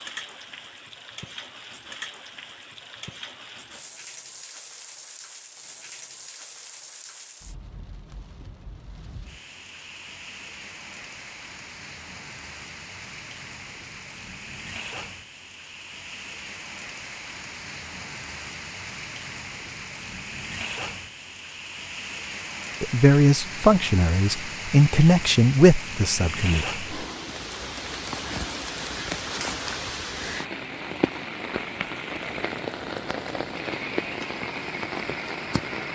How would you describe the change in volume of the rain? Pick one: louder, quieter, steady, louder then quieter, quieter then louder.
louder.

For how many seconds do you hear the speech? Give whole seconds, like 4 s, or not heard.
4 s.